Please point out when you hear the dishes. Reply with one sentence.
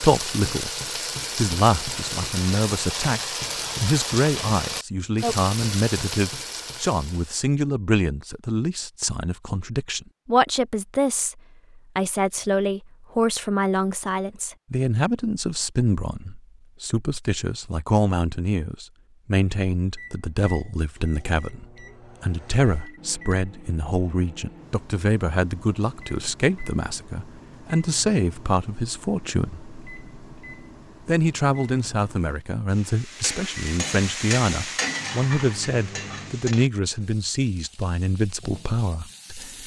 You can't hear the dishes here.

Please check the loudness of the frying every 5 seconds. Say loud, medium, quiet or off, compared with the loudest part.
loud, loud, off, off, off, off, loud, medium.